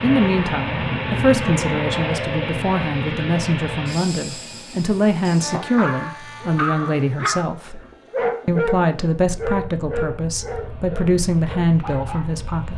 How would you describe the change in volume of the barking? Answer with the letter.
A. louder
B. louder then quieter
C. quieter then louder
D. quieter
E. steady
D.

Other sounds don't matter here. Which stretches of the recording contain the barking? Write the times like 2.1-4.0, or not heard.
5.8-12.2.